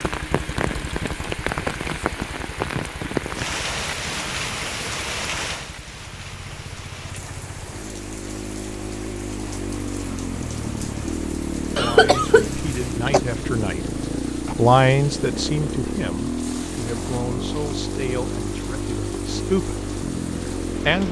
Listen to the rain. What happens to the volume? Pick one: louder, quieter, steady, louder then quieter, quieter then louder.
quieter.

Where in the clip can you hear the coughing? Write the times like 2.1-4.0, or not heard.
11.8-13.2.